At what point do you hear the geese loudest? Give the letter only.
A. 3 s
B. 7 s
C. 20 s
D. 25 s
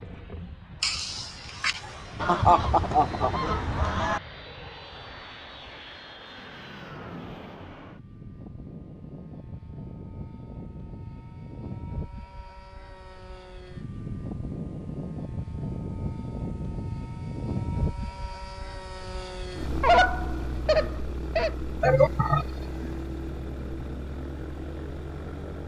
C.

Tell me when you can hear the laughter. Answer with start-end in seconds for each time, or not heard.
0.8-3.3, 21.8-22.9.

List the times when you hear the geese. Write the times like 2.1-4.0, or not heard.
2.1-4.2, 19.8-21.5.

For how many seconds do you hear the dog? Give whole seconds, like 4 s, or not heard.
not heard.